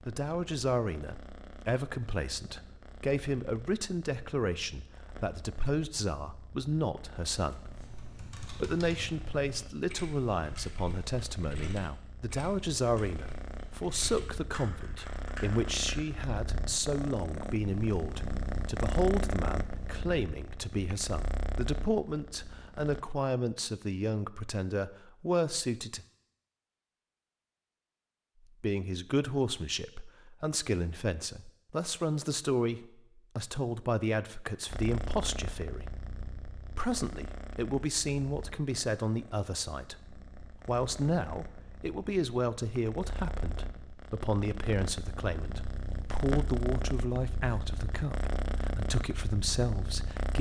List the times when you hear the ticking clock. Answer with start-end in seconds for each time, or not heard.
not heard.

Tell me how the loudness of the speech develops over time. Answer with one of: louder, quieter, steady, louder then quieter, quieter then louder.
steady.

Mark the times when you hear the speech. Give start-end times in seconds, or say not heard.
0.1-26.1, 28.6-50.3.